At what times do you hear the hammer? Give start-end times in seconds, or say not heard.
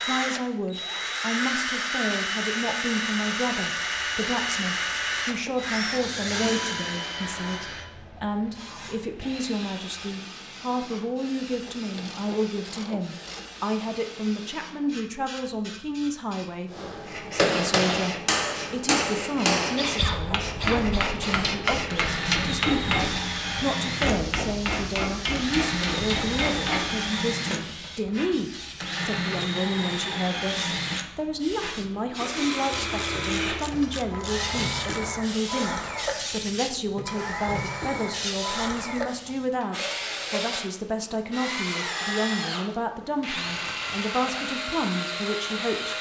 16.7-27.9.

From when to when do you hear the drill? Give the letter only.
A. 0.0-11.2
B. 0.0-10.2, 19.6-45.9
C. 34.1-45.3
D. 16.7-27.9
B.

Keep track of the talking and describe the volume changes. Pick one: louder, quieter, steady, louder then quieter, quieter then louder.
steady.